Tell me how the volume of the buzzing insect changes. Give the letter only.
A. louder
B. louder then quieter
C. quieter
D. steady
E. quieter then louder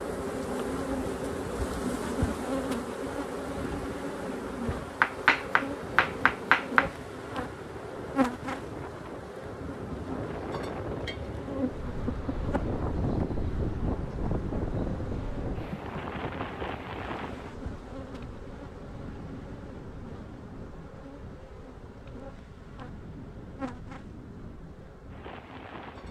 C.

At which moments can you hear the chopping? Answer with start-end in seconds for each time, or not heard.
5.0-6.9.